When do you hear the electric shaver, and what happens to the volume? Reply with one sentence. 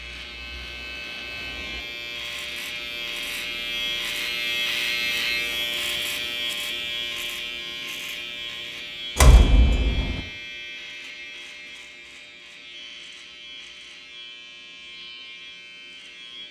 You can hear the electric shaver from 0.0 to 16.4 s, getting louder then quieter.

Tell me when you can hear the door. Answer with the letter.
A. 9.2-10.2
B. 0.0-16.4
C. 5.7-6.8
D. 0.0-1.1
A.